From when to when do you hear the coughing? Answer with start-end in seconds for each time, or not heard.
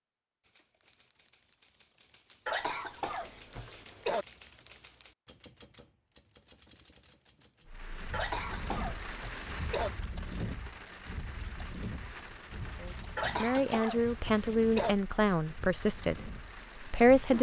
2.5-4.2, 8.1-9.9, 13.2-14.9.